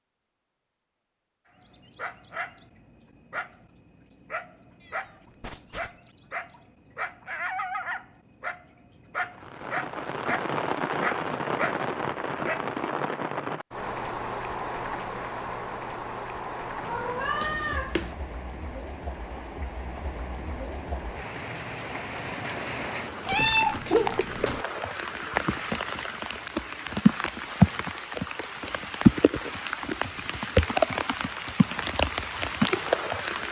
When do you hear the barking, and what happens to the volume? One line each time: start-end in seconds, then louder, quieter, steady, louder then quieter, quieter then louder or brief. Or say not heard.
1.6-12.8 louder.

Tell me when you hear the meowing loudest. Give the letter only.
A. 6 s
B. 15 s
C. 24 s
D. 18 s
C.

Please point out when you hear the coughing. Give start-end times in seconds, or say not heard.
not heard.